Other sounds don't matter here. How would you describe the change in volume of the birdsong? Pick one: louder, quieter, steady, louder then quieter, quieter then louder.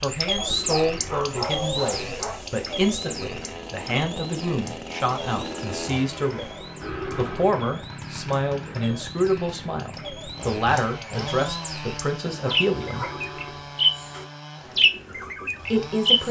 quieter then louder.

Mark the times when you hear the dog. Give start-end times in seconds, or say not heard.
0.3-2.4, 12.4-13.2.